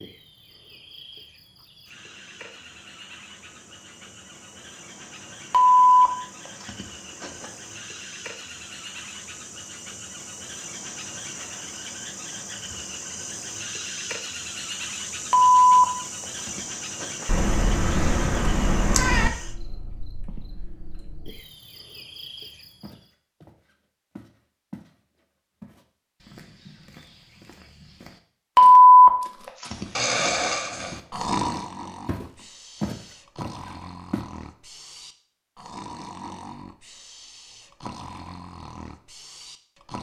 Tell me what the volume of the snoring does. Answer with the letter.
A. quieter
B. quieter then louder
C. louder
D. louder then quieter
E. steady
A.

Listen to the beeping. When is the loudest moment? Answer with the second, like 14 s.
29 s.